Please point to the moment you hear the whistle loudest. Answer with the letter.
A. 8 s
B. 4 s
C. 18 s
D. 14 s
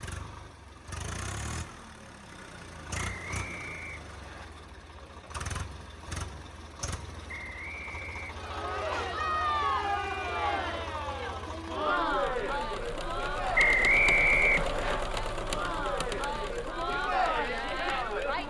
D.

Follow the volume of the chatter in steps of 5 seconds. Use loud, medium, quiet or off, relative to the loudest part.
off, loud, loud, loud.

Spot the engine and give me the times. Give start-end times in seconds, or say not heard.
0.0-18.4.